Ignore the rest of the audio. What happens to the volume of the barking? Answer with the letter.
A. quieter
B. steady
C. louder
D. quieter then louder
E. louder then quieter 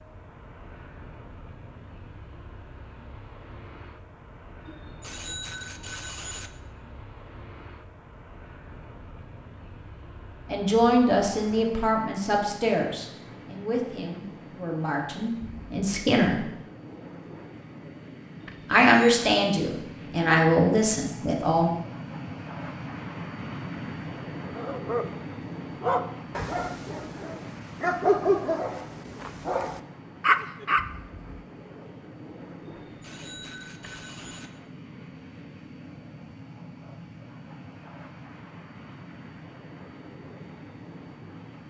D.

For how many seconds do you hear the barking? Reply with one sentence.
You can hear the barking for 6 seconds altogether.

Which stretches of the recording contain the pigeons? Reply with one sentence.
You can't hear the pigeons here.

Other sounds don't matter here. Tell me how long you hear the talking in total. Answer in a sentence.
You can hear the talking for 9 seconds altogether.